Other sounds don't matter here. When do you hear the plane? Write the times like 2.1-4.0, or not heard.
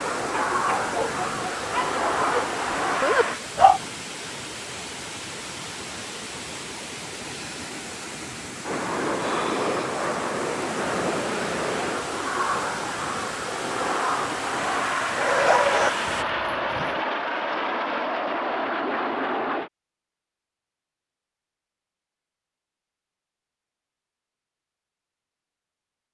0.0-3.4, 8.6-19.7.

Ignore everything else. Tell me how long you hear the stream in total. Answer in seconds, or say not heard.
16 s.